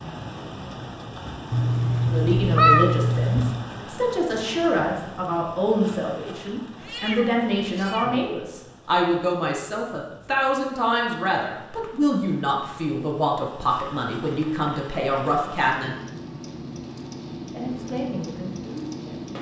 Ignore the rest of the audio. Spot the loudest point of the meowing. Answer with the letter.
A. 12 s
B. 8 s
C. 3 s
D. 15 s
C.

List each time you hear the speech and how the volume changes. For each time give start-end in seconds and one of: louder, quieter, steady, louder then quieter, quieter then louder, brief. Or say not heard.
2.1-15.9 steady
17.5-19.3 brief.